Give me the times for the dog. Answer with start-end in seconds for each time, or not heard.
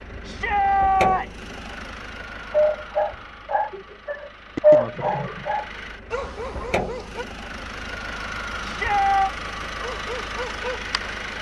2.5-7.2, 9.8-11.3.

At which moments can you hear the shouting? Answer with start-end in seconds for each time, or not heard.
0.2-1.4, 8.6-9.3.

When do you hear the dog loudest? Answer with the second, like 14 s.
5 s.